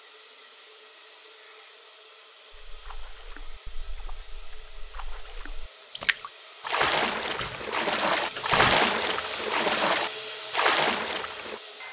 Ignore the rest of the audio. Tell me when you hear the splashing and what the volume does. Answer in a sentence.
You can hear the splashing from 2.7 to 11.6 s, getting louder.